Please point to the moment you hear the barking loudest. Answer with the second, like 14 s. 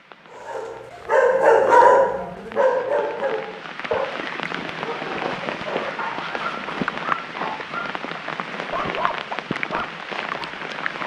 2 s.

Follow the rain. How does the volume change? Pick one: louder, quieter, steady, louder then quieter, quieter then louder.
louder.